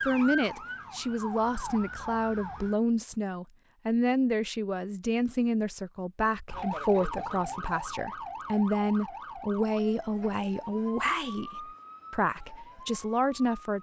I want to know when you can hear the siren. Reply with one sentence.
You can hear the siren from 0.0 to 2.8 s and from 6.5 to 13.7 s.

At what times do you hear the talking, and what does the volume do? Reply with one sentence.
You can hear the talking from 0.1 to 13.7 s, at a steady volume.